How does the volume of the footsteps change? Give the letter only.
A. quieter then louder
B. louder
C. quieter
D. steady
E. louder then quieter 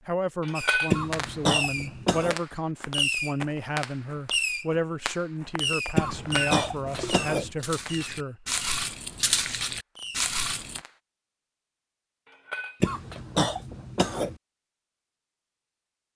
A.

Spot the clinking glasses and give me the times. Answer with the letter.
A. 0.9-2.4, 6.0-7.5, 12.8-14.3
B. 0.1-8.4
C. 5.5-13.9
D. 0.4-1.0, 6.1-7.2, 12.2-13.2
D.